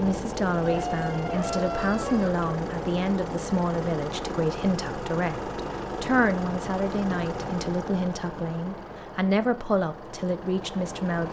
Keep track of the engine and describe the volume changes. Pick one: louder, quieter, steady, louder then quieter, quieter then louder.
quieter.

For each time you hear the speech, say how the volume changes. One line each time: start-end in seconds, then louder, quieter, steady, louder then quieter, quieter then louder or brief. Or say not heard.
0.0-11.2 steady.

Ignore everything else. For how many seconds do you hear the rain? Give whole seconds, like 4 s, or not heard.
not heard.